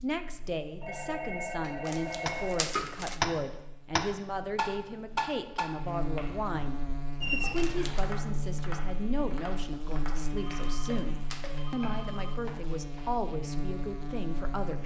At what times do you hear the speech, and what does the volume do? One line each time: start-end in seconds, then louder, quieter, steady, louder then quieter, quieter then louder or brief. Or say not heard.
0.0-14.8 steady.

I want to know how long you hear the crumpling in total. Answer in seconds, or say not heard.
3 s.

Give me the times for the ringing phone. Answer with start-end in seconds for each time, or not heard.
0.8-2.6, 7.2-8.1, 10.3-12.3.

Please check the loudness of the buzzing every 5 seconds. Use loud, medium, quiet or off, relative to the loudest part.
quiet, loud, loud.